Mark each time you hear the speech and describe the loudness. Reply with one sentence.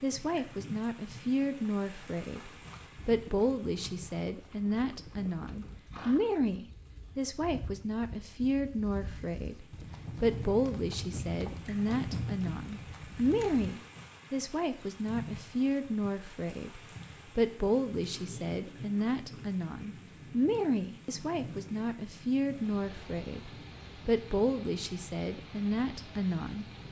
You can hear the speech from 0.0 to 26.7 s, at a steady volume.